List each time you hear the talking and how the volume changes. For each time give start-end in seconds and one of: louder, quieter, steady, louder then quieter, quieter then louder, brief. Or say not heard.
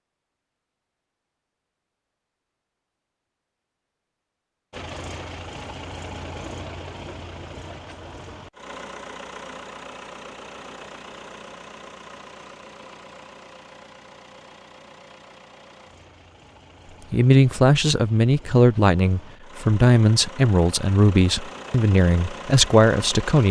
17.1-23.4 steady.